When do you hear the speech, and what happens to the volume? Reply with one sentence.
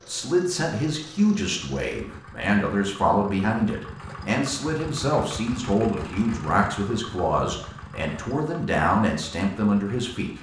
You can hear the speech from 0.1 to 10.3 s, at a steady volume.